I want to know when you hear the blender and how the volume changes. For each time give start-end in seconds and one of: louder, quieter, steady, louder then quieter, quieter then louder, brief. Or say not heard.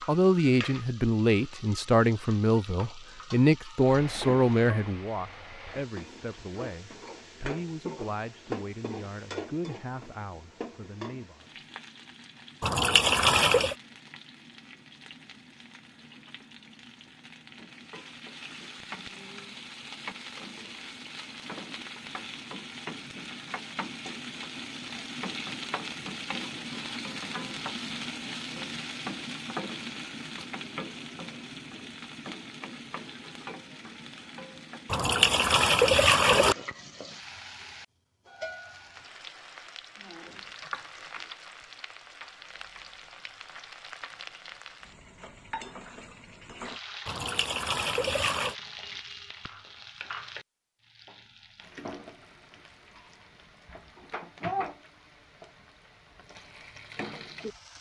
not heard.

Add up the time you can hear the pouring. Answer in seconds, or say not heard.
4 s.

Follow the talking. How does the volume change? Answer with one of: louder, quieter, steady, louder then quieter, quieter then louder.
quieter.